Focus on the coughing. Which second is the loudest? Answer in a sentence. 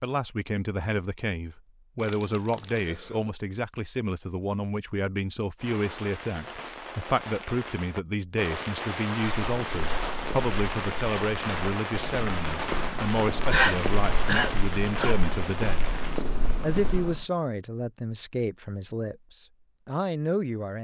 The loudest moment of the coughing is at 14 seconds.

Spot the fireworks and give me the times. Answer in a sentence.
You can hear the fireworks from 5.5 to 16.2 s.